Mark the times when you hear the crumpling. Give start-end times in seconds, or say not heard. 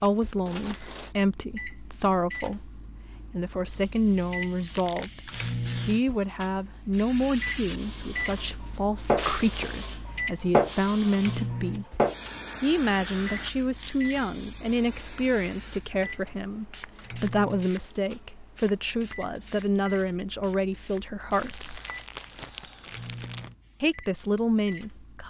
0.5-1.1, 9.2-9.8, 21.3-23.5.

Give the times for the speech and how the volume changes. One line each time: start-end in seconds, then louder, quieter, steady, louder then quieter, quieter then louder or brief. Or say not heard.
0.0-11.8 steady
12.6-21.8 steady
23.8-25.2 brief.